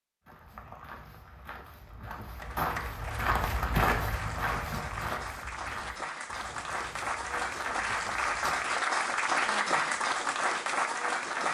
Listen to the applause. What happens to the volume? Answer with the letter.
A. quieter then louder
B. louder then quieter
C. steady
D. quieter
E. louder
E.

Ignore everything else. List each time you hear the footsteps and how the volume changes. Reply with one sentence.
You can hear the footsteps from 0.2 to 8.8 s, getting louder then quieter.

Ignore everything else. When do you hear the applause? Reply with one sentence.
The applause can be heard from 2.2 to 11.4 s.